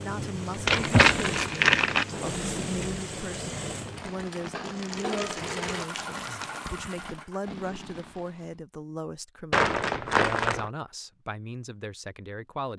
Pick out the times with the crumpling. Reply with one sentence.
You can hear the crumpling from 0.7 to 2.0 s, from 4.6 to 6.6 s and from 9.5 to 10.7 s.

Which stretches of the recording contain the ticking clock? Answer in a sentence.
The ticking clock can't be heard in this clip.